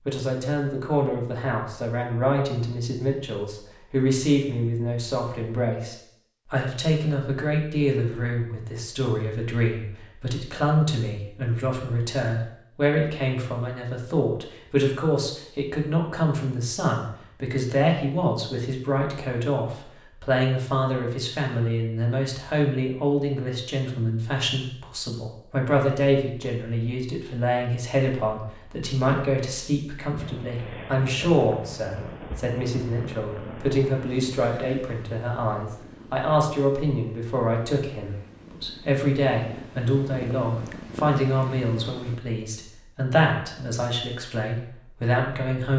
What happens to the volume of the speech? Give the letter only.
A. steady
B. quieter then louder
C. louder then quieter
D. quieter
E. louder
A.